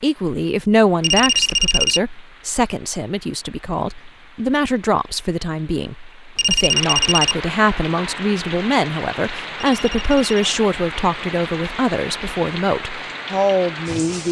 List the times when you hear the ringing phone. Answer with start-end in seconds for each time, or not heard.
1.0-2.0, 6.3-7.3, 9.6-10.6.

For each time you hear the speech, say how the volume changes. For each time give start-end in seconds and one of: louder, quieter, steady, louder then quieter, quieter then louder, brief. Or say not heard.
0.0-14.2 steady.